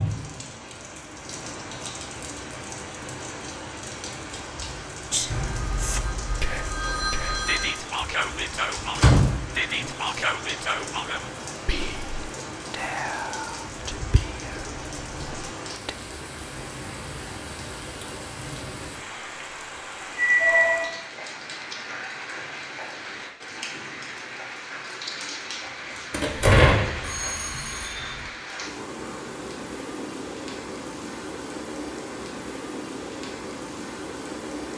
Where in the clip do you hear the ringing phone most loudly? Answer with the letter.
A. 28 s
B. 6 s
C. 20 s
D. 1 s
C.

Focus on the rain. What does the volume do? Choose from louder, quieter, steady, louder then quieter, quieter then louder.
steady.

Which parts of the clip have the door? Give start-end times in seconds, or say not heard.
8.9-9.8, 26.1-27.0.